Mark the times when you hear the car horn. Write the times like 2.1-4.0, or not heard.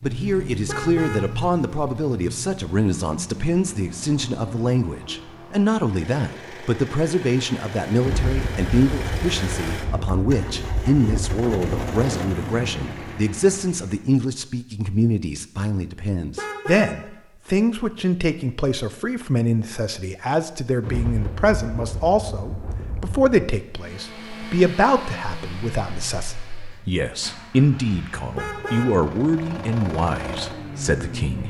0.7-1.4, 16.4-18.0, 28.4-29.1.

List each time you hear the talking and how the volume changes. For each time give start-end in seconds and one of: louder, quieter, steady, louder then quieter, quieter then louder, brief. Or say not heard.
0.0-31.4 steady.